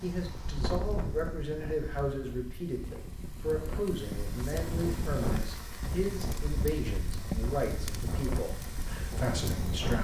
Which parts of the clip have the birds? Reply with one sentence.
The birds can't be heard in this clip.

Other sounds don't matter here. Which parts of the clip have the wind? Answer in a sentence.
The wind can be heard from 0.0 to 9.9 s.